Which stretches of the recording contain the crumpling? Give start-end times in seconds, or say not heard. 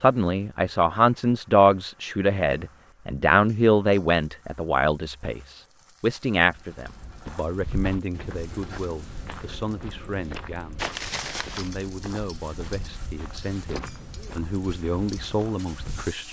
10.8-11.7.